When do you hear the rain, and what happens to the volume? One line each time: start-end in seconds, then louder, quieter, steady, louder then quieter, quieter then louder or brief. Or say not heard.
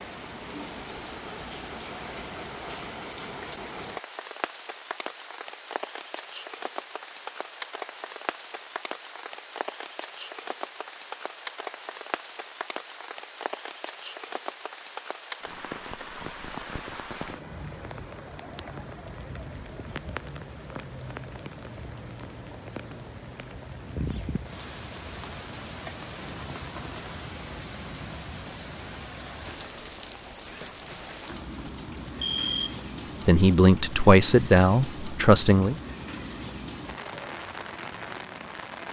0.0-38.8 steady.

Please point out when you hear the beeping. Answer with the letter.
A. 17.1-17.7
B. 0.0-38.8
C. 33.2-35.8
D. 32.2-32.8
D.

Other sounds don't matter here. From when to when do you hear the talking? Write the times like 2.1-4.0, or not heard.
33.2-35.8.